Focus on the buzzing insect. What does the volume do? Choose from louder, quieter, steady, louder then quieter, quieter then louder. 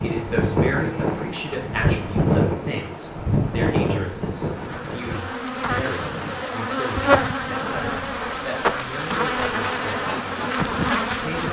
louder.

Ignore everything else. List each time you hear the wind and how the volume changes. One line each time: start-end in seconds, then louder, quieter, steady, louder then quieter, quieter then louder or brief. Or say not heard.
0.0-11.3 quieter.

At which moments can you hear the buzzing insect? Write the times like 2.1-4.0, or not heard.
0.0-11.4.